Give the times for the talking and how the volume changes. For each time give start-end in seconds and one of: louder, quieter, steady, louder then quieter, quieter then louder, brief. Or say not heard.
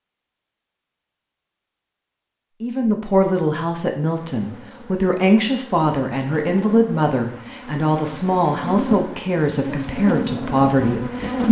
2.6-11.4 steady.